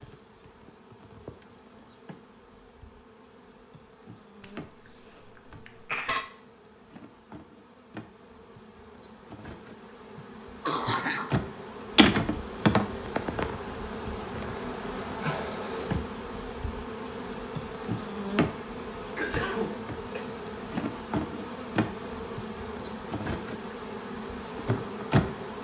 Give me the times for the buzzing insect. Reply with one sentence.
You can hear the buzzing insect from 0.0 to 25.6 s.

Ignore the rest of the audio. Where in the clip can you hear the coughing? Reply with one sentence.
The coughing can be heard from 4.4 to 6.2 s, from 10.2 to 11.3 s and from 19.1 to 20.2 s.